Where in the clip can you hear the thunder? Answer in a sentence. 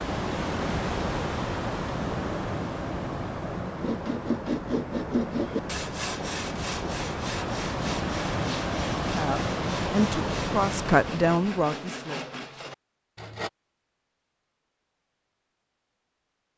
You can hear the thunder from 2.0 to 3.9 s.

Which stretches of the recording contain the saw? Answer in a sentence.
The saw can be heard from 3.8 to 13.5 s.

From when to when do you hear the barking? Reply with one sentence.
The barking can't be heard in this clip.